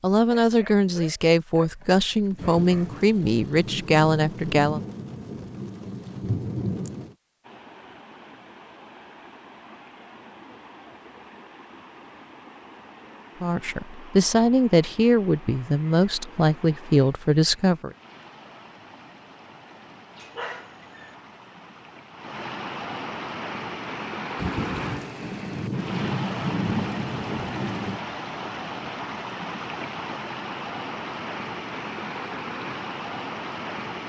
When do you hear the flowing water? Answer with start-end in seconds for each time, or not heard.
7.4-34.0.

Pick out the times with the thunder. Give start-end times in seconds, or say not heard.
2.4-7.2, 24.4-28.0.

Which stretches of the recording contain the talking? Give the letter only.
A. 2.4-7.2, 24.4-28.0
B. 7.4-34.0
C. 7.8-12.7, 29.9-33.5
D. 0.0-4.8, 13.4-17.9
D.